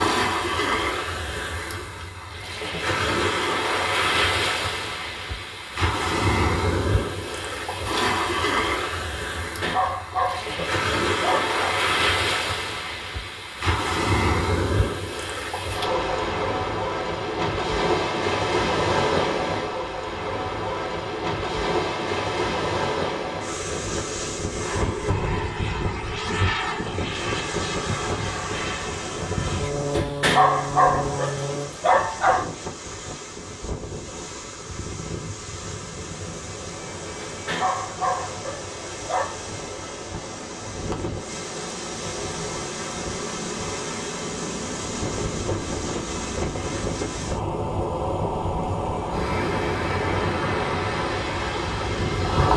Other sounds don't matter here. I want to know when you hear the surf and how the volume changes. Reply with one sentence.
You can hear the surf from 0.0 to 52.5 s, getting quieter then louder.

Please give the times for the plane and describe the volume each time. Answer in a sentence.
You can hear the plane from 24.6 to 31.7 s, at a steady volume; and from 34.6 to 52.5 s, getting louder.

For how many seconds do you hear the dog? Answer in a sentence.
You can hear the dog for 7 seconds altogether.